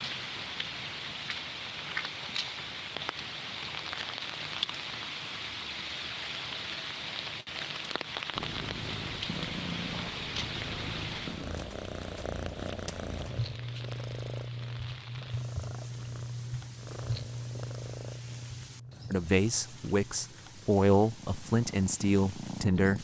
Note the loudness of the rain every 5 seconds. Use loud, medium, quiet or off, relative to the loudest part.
loud, loud, medium, quiet, quiet.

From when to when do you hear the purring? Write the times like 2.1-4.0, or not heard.
8.3-22.9.